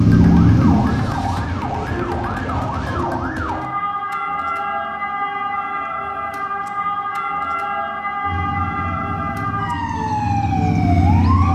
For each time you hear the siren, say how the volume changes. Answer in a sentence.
You can hear the siren from 0.0 to 11.5 s, at a steady volume.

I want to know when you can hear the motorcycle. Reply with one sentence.
The motorcycle can be heard from 0.0 to 3.3 s and from 8.2 to 11.5 s.